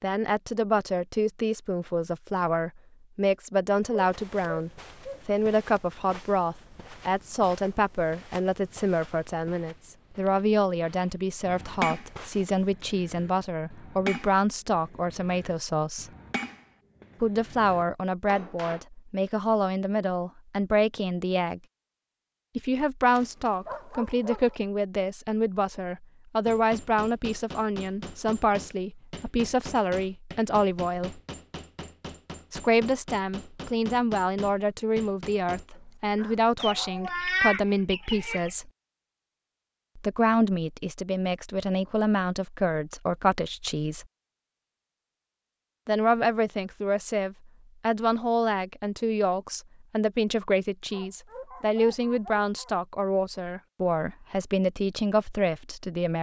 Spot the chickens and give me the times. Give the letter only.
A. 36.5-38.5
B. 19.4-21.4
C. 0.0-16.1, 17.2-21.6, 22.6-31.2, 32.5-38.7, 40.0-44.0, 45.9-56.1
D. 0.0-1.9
A.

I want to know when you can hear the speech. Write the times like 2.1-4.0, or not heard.
0.0-16.1, 17.2-21.6, 22.6-31.2, 32.5-38.7, 40.0-44.0, 45.9-56.1.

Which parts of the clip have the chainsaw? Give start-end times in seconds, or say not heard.
not heard.